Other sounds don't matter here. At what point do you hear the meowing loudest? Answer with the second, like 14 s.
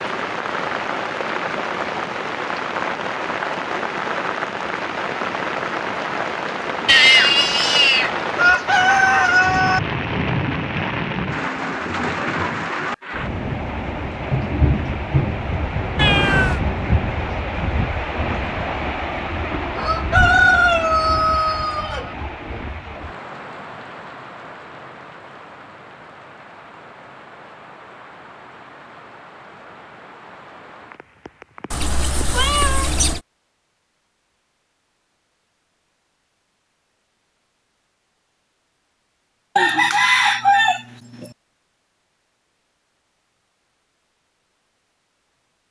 7 s.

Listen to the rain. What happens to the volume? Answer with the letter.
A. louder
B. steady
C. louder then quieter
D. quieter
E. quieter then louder
D.